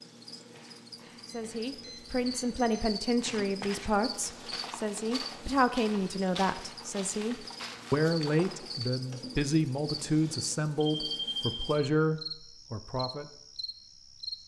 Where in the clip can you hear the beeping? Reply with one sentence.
You can hear the beeping from 1.2 to 2.9 s and from 10.8 to 11.8 s.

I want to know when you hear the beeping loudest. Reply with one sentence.
The volume of the beeping peaks at 11 seconds.